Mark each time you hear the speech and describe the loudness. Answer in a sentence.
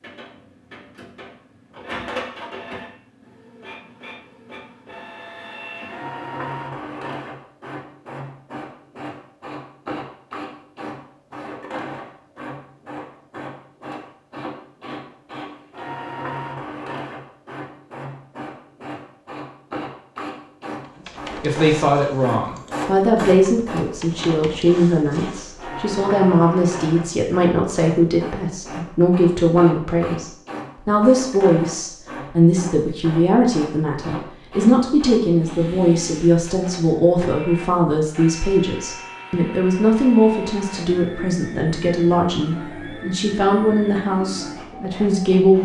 The speech can be heard from 21.4 to 45.6 s, at a steady volume.